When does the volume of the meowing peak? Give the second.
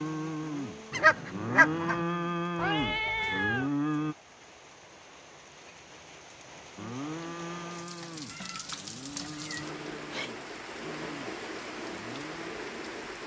3 s.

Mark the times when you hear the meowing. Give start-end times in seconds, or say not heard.
2.5-3.7, 8.3-10.3.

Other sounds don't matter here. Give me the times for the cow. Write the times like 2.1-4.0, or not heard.
0.0-4.2, 6.8-12.6.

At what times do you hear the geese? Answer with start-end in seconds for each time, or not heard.
0.9-2.0.